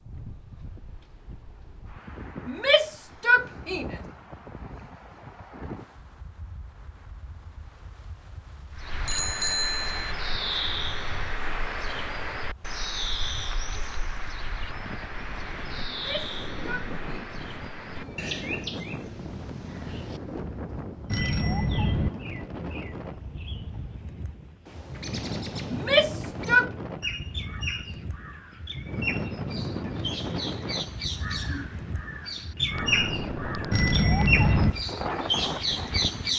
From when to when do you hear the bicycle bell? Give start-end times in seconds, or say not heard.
9.1-10.1, 21.1-22.1, 33.7-34.8.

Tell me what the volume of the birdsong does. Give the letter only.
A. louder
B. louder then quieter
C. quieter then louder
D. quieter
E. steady
C.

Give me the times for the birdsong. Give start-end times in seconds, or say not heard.
8.7-36.3.